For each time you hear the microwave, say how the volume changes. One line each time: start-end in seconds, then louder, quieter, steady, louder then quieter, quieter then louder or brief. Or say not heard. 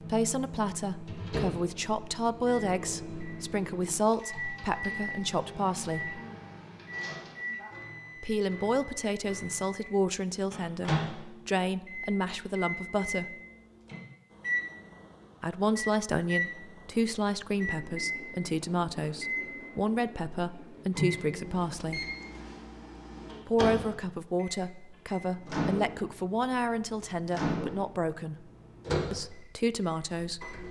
0.0-30.6 steady.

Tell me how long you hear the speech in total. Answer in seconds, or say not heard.
25 s.